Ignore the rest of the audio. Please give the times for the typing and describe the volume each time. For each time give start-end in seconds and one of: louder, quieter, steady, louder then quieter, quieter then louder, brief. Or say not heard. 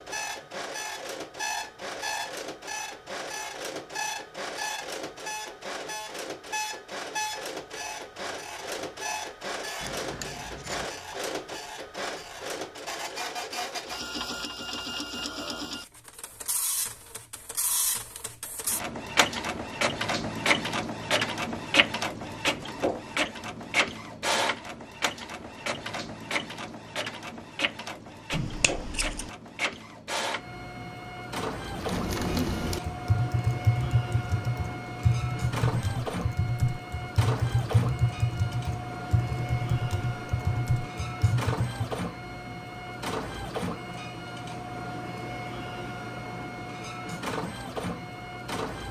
31.6-42.0 steady.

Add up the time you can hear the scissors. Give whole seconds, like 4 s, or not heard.
2 s.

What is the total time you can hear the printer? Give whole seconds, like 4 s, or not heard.
49 s.